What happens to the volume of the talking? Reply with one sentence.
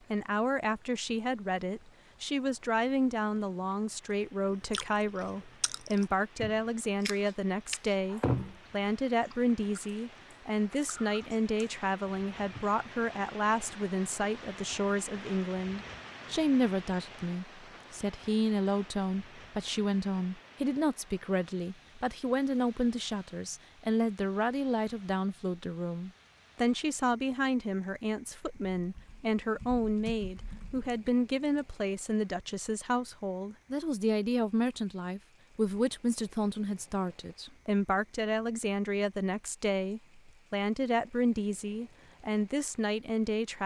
The loudness of the talking stays about the same.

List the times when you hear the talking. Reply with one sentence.
The talking can be heard from 0.1 to 43.6 s.